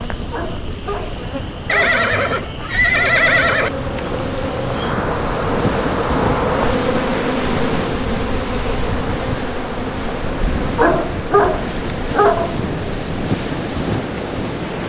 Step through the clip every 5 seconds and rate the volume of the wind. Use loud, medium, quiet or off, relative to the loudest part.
medium, loud, loud.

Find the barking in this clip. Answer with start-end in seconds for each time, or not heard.
0.3-1.9, 10.8-12.6.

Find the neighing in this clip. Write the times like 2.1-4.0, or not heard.
1.6-3.7.